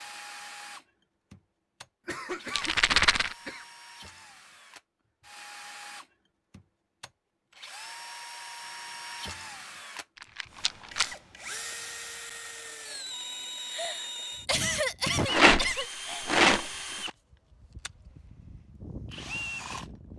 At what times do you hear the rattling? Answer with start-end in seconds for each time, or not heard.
2.5-3.4, 10.2-11.1, 15.2-17.1.